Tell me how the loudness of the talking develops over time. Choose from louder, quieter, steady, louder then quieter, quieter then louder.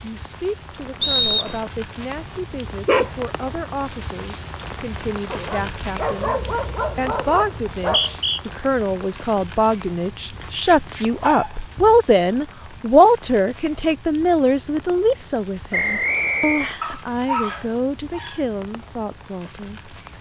louder then quieter.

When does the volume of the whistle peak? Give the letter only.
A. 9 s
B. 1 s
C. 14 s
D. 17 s
B.